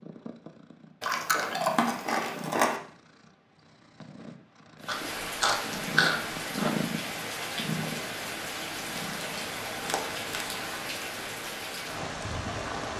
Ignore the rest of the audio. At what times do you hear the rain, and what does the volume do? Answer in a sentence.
The rain can be heard from 4.8 to 12.9 s, at a steady volume.